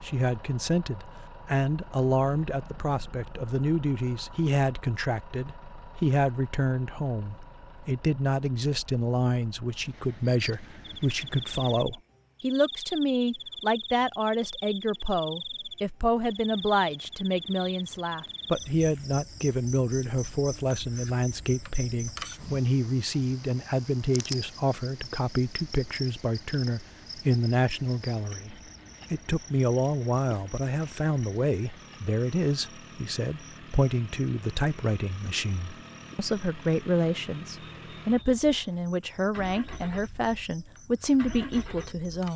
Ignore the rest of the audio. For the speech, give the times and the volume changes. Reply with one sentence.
You can hear the speech from 0.0 to 42.3 s, at a steady volume.